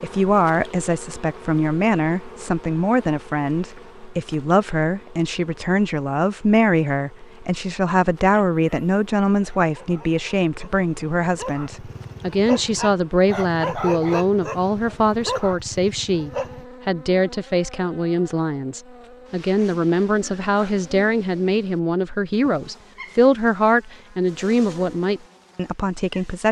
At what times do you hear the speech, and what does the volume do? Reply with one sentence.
You can hear the speech from 0.0 to 26.4 s, at a steady volume.